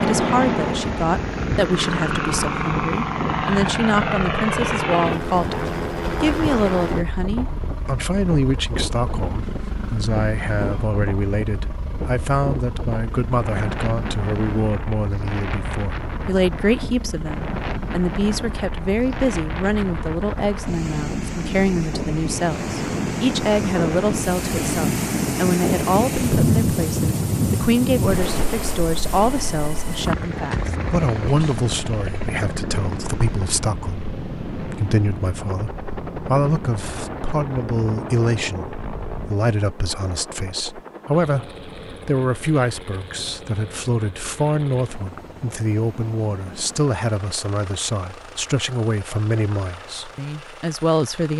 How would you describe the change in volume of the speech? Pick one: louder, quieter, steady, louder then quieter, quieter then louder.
steady.